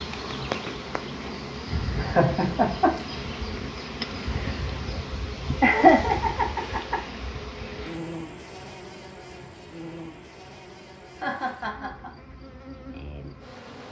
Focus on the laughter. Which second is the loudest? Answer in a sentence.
The volume of the laughter peaks at 6 seconds.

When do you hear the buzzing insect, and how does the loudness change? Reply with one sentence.
You can hear the buzzing insect from 0.0 to 13.8 s, getting quieter.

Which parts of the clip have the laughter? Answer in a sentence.
You can hear the laughter from 1.9 to 3.1 s, from 5.6 to 7.0 s and from 11.2 to 12.1 s.